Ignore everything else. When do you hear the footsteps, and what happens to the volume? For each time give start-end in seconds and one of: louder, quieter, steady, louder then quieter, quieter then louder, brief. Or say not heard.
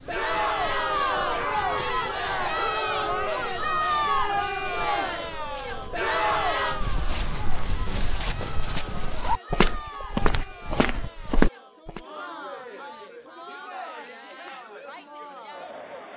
0.0-12.0 louder.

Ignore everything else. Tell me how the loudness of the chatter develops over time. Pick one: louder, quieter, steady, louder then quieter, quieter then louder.
quieter.